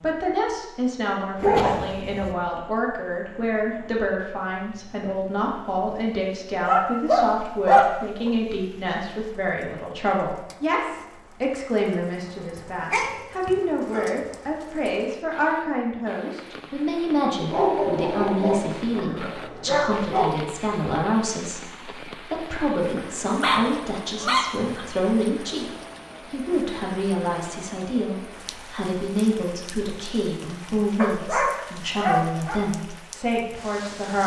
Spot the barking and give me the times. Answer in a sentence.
The barking can be heard from 1.4 to 2.4 s, from 6.7 to 8.3 s, from 12.6 to 14.1 s, from 17.5 to 20.4 s, from 22.9 to 24.9 s and from 30.9 to 32.6 s.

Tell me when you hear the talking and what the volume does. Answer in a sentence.
You can hear the talking from 0.0 to 34.2 s, at a steady volume.